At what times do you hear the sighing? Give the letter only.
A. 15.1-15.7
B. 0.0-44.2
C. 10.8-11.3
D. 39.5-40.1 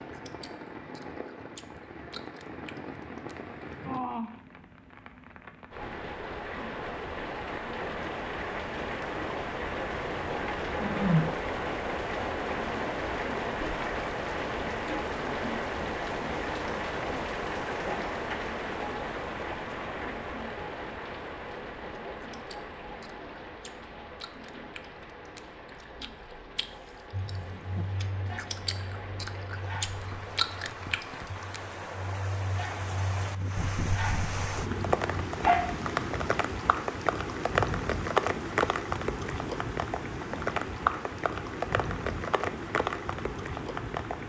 C.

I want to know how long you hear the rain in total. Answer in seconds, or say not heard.
44 s.